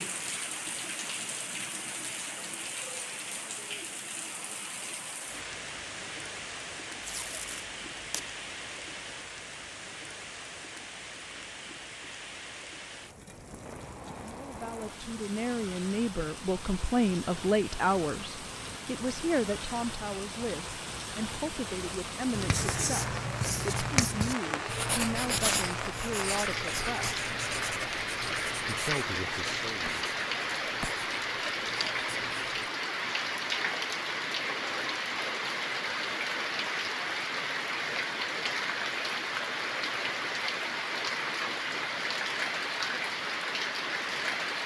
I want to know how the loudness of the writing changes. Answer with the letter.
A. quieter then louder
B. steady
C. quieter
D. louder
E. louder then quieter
C.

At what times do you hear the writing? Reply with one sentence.
The writing can be heard from 22.3 to 32.7 s.